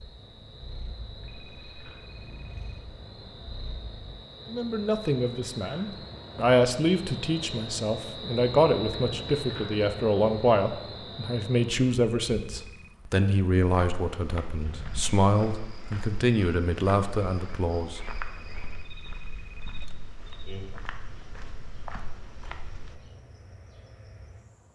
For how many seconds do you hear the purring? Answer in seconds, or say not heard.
4 s.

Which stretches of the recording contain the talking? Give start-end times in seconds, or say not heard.
4.5-18.0.